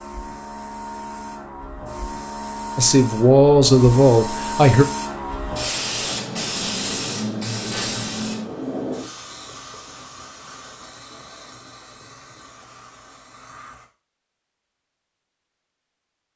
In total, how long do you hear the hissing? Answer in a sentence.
The hissing can be heard for 14 seconds in total.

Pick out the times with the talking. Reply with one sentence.
You can hear the talking from 2.8 to 4.8 s.